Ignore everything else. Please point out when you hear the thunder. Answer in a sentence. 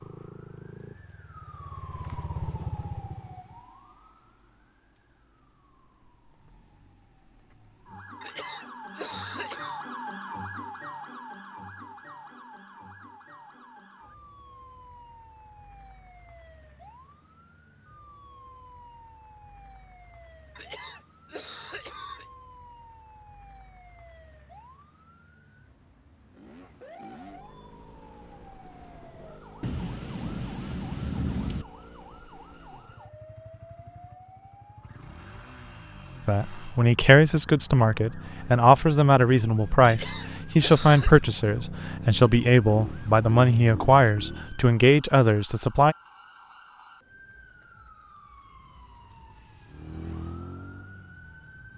You can hear the thunder from 29.6 to 31.6 s.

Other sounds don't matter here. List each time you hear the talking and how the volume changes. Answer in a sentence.
The talking can be heard from 36.2 to 46.0 s, at a steady volume.